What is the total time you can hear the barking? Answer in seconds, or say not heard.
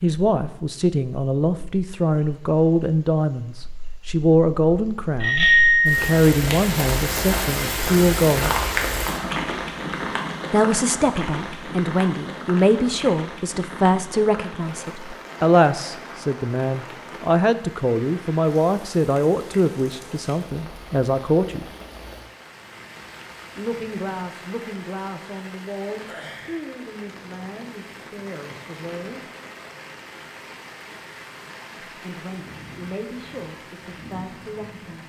not heard.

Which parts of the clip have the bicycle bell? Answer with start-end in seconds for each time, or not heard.
5.2-6.0.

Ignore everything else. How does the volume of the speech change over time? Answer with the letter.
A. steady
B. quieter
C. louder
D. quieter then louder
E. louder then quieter
B.